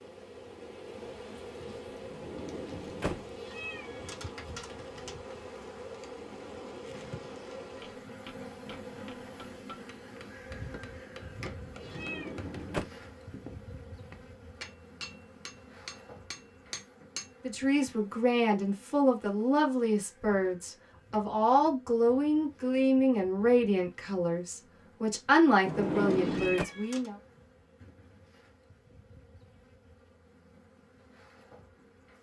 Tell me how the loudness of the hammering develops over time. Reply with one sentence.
The volume of the hammering goes up.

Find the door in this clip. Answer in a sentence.
You can hear the door from 2.1 to 3.2 s, from 11.8 to 12.8 s and from 25.6 to 26.6 s.